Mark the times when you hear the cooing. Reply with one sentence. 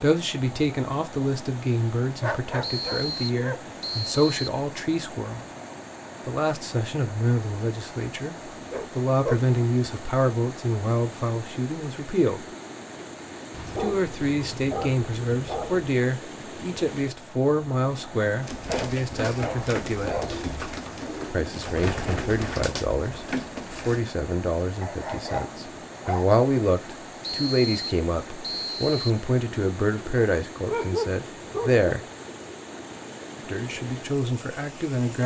The cooing can be heard from 18.4 to 24.1 s.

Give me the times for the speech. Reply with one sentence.
You can hear the speech from 0.0 to 5.5 s, from 6.2 to 12.4 s, from 13.8 to 20.2 s, from 21.3 to 32.0 s and from 33.5 to 35.2 s.